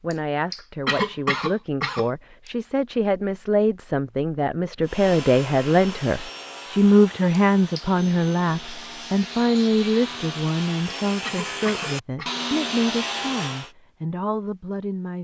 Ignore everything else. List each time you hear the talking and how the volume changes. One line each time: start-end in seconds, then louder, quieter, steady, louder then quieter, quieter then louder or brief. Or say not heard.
0.0-15.2 louder then quieter.